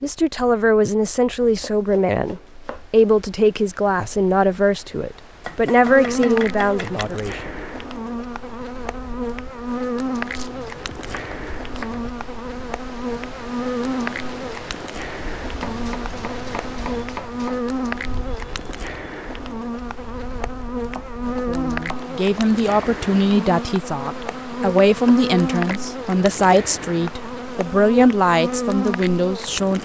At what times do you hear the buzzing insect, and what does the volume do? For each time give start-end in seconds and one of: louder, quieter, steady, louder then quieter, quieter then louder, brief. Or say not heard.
5.7-29.8 steady.